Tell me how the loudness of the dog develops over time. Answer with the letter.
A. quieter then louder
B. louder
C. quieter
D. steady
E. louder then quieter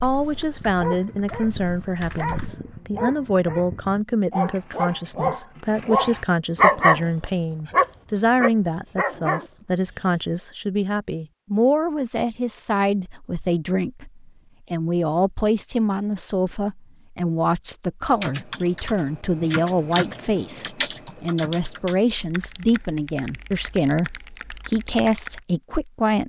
E.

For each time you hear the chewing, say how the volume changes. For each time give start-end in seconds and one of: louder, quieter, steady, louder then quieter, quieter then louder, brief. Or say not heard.
not heard.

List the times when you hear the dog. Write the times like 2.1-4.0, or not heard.
0.6-10.2.